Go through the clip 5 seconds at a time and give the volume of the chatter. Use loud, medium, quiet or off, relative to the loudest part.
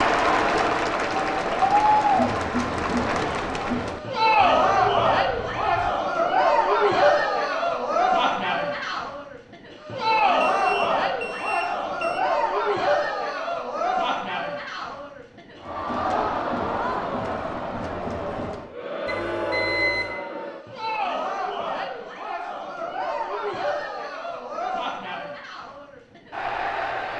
loud, loud, loud, medium, medium, medium.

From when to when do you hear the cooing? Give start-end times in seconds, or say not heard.
not heard.